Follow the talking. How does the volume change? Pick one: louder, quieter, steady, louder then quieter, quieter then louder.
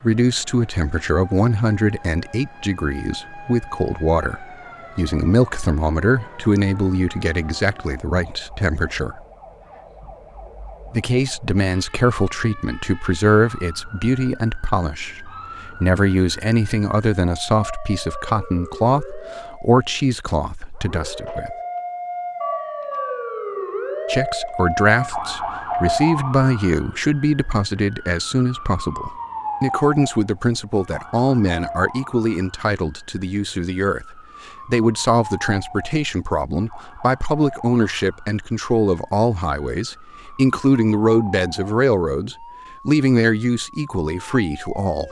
steady.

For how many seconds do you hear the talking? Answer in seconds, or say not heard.
41 s.